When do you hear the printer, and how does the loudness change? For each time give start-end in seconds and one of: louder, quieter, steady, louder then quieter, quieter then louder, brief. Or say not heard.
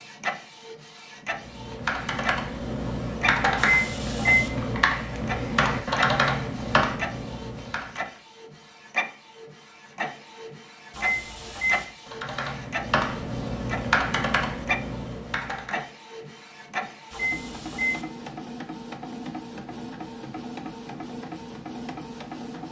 0.0-22.6 steady.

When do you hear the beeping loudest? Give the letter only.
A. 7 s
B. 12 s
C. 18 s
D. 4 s
D.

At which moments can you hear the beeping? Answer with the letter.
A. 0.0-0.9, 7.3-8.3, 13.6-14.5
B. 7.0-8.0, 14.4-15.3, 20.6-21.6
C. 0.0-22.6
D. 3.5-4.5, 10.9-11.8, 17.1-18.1
D.